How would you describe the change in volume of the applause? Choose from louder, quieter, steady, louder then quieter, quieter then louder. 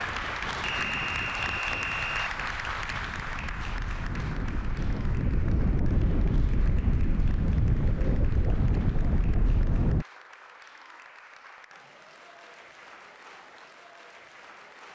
quieter.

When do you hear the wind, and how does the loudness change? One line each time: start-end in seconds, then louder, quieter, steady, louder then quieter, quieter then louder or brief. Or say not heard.
0.0-10.1 louder.